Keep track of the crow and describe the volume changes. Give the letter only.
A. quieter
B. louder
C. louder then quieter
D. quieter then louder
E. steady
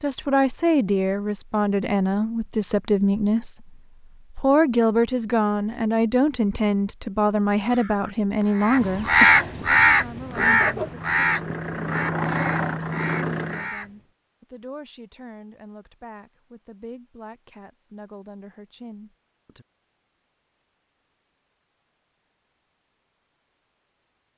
C.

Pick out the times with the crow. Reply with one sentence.
You can hear the crow from 7.6 to 13.9 s.